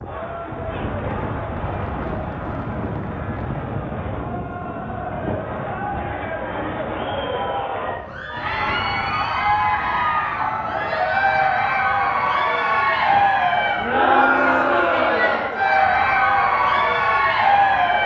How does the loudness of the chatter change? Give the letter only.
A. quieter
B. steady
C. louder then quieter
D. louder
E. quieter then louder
D.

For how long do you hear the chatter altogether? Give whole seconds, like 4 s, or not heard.
18 s.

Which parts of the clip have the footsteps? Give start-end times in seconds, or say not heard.
not heard.